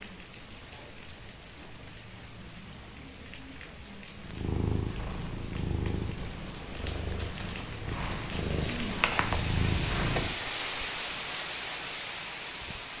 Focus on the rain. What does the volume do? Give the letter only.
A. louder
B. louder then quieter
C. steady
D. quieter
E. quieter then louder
A.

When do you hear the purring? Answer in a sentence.
The purring can be heard from 4.2 to 10.3 s.